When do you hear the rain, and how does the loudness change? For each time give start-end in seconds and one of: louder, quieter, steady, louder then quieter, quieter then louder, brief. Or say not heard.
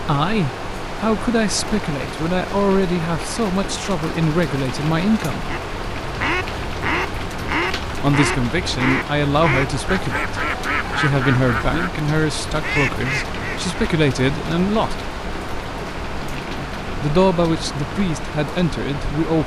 0.0-19.4 steady.